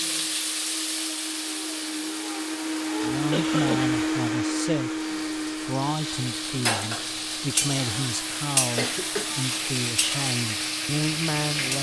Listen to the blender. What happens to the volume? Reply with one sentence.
The volume of the blender goes up, then down.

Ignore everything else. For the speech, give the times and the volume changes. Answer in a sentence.
You can hear the speech from 3.0 to 11.7 s, at a steady volume.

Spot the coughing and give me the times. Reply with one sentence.
You can hear the coughing from 3.1 to 3.9 s and from 8.8 to 9.3 s.